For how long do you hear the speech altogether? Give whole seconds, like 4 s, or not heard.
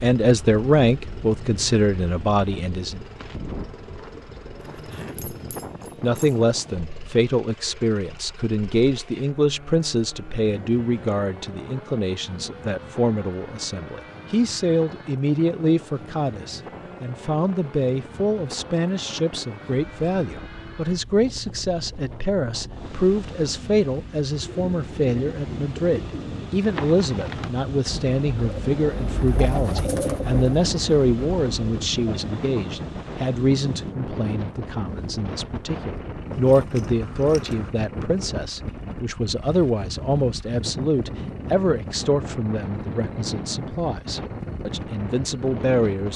43 s.